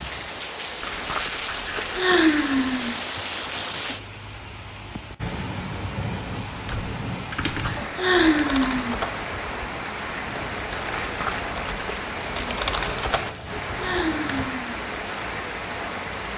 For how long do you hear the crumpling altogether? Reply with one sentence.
The crumpling can be heard for 3 seconds in total.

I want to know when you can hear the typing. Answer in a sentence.
You can hear the typing from 6.7 to 14.4 s.